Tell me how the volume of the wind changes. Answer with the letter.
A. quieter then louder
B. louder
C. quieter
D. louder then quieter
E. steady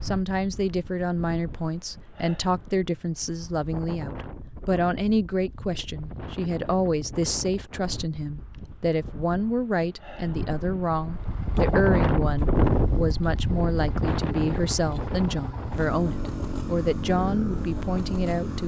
B.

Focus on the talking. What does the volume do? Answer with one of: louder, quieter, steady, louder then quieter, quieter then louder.
steady.